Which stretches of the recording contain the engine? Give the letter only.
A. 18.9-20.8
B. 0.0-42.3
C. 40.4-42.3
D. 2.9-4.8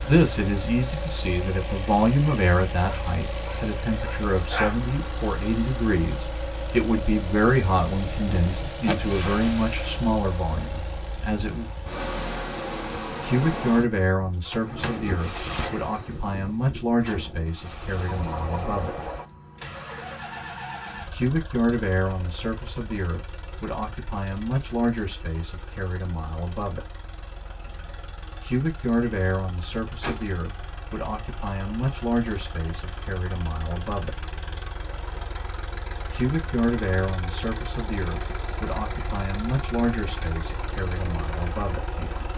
B.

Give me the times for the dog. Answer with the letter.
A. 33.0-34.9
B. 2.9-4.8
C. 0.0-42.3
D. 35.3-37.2
B.